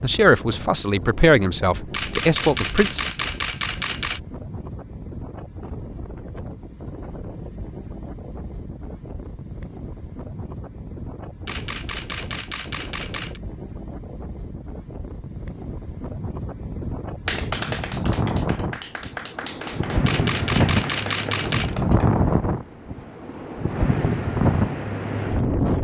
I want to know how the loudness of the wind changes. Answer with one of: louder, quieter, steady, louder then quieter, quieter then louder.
louder.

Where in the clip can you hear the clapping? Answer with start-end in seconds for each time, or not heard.
17.2-22.1.